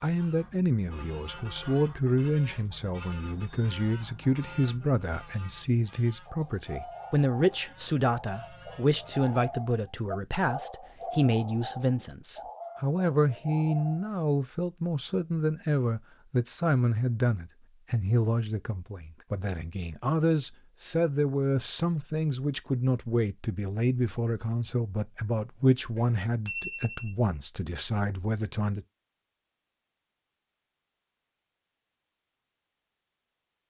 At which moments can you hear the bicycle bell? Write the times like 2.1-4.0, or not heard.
3.1-3.7, 25.9-27.1.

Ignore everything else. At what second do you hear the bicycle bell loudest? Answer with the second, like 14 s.
27 s.